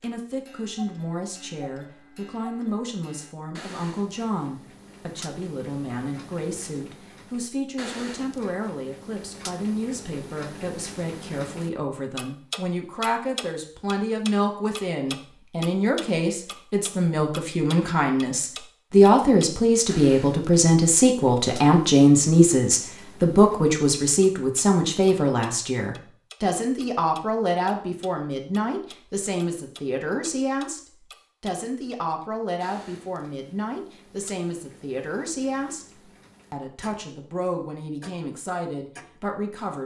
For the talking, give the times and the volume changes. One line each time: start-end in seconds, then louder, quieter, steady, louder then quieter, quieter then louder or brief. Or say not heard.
0.0-39.8 louder then quieter.